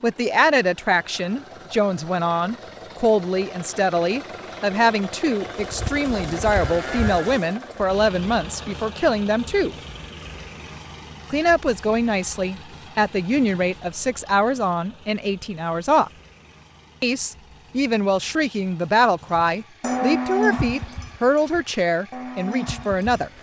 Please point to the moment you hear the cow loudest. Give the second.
20 s.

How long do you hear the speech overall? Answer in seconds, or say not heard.
21 s.